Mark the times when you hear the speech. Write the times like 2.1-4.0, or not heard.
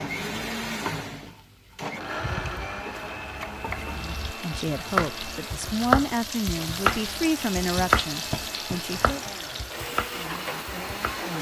4.0-9.2.